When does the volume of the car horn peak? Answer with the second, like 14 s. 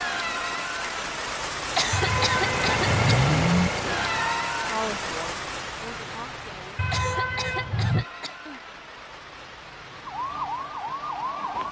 3 s.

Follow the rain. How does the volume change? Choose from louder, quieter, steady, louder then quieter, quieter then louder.
quieter.